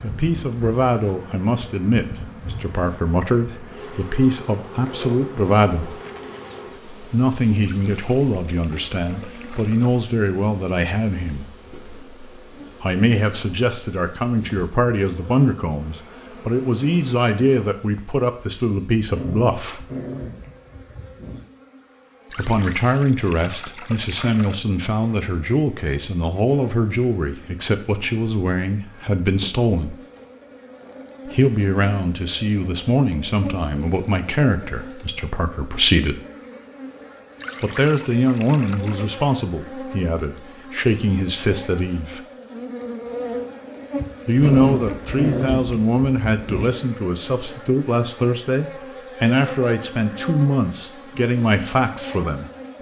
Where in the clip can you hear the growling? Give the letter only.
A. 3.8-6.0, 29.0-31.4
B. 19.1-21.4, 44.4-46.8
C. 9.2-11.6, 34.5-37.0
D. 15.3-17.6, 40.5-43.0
B.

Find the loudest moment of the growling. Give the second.
45 s.